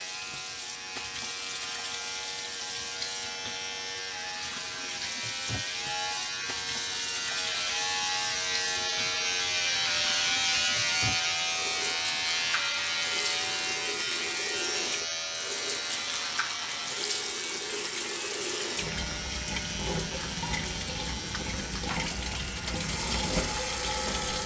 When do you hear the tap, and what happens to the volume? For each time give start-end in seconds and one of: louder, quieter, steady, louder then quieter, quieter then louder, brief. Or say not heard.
0.0-24.4 louder.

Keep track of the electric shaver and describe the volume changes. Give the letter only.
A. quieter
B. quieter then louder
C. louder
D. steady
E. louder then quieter
E.